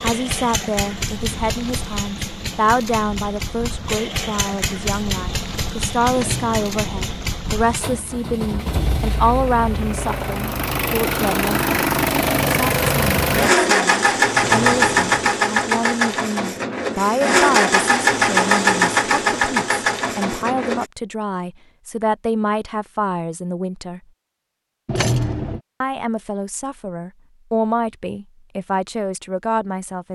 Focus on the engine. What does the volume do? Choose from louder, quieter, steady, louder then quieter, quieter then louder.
louder.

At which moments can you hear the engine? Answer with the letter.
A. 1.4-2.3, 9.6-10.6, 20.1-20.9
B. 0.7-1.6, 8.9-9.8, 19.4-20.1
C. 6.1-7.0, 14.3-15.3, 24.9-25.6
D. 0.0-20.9
D.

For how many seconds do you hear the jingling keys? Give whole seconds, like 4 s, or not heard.
3 s.